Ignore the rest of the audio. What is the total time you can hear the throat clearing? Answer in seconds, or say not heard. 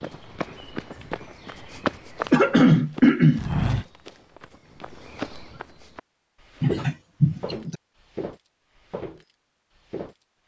2 s.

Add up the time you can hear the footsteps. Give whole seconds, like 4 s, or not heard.
10 s.